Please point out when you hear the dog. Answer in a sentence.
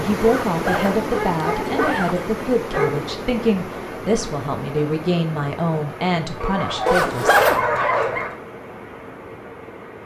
You can hear the dog from 0.9 to 3.0 s and from 6.4 to 8.3 s.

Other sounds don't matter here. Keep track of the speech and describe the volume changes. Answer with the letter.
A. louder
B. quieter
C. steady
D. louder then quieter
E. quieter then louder
C.